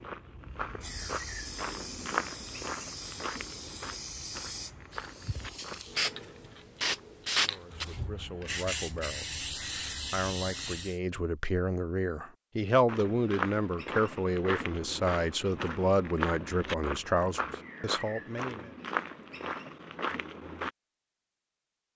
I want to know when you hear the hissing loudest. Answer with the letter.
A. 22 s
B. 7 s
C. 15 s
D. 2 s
B.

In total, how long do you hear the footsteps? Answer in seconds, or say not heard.
14 s.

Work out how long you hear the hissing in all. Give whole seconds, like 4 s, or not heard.
11 s.